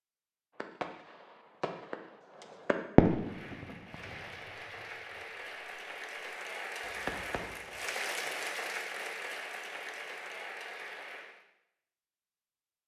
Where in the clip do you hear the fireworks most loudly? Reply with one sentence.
The loudest moment of the fireworks is at 3 seconds.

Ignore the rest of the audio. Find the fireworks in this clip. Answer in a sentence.
The fireworks can be heard from 0.6 to 4.2 s and from 6.8 to 7.8 s.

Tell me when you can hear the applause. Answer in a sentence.
The applause can be heard from 3.1 to 11.4 s.